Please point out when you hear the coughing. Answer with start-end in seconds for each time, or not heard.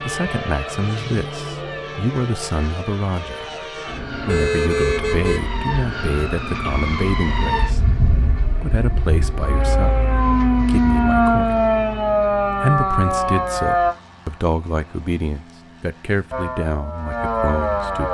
not heard.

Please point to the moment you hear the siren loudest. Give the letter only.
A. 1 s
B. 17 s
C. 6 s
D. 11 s
D.